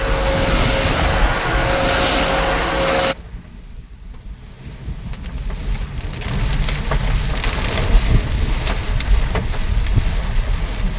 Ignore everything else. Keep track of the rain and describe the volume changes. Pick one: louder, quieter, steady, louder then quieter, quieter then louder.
quieter then louder.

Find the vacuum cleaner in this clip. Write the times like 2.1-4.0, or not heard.
0.0-3.1.